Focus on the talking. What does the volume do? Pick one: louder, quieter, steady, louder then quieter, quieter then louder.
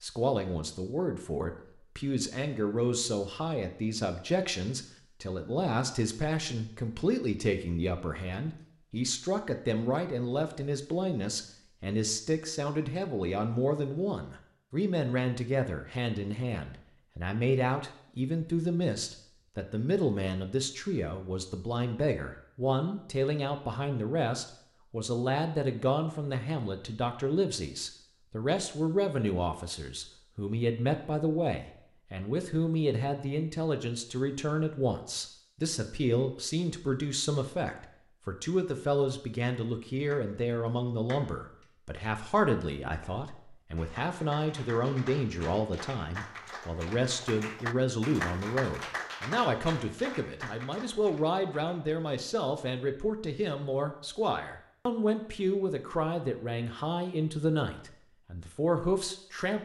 steady.